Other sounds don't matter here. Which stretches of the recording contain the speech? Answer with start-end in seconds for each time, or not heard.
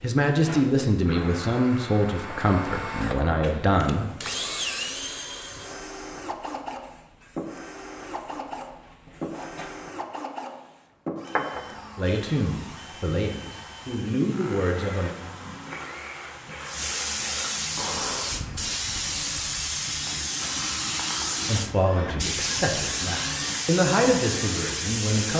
0.0-4.2, 11.9-15.2, 21.4-25.3.